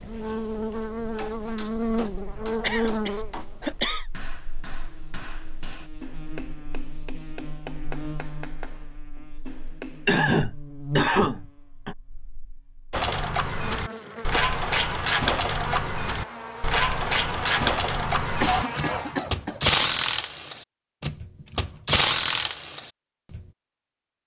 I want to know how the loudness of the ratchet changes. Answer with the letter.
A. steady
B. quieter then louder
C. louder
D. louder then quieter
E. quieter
A.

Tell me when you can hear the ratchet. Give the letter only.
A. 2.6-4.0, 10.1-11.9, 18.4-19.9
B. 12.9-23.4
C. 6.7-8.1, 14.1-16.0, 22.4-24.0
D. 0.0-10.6
B.